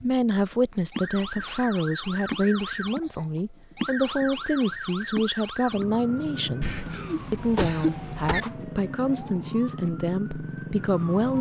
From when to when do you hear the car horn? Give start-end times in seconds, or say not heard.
not heard.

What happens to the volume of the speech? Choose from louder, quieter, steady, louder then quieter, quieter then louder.
steady.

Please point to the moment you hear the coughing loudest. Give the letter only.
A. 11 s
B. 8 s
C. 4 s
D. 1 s
B.